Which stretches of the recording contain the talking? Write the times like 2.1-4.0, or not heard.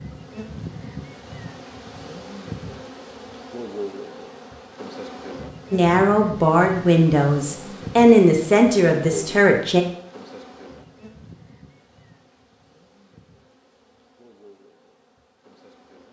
5.7-9.8.